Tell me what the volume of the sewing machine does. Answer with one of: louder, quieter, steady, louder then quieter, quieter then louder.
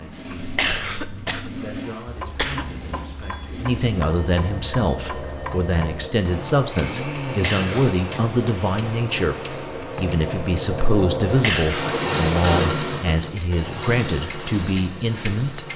louder.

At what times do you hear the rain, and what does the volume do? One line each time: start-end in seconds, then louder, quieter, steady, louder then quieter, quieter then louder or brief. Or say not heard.
not heard.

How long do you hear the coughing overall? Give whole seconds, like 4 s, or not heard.
3 s.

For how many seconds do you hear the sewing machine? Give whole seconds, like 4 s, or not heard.
16 s.